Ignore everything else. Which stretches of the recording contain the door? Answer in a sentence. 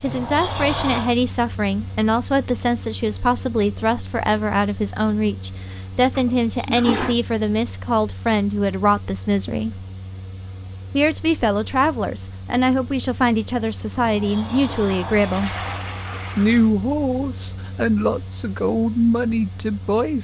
The door can be heard from 0.0 to 1.1 s and from 13.9 to 15.9 s.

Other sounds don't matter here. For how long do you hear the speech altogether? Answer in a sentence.
The speech can be heard for 18 seconds in total.